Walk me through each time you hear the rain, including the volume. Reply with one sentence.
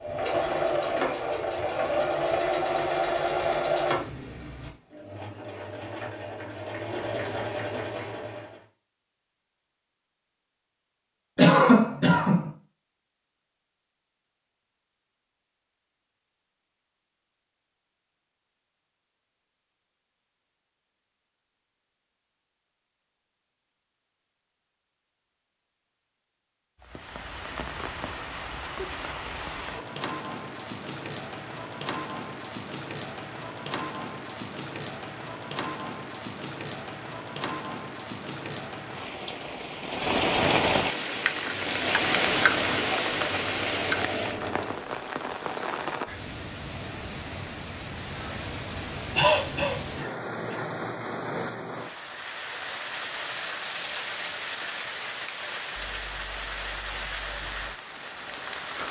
You can hear the rain from 26.8 to 58.8 s, getting louder then quieter.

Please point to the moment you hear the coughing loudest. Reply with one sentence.
The loudest moment of the coughing is at 12 seconds.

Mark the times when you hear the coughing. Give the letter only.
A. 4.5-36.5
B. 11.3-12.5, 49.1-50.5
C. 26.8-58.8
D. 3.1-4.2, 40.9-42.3
B.